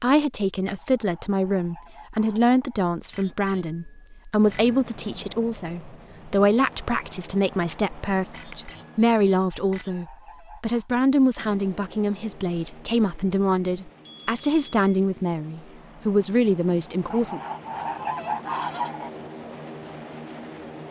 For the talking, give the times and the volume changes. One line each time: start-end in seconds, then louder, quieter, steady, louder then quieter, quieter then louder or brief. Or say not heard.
0.0-17.4 steady.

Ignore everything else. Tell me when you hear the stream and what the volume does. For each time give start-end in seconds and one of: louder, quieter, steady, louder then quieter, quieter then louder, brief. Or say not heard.
not heard.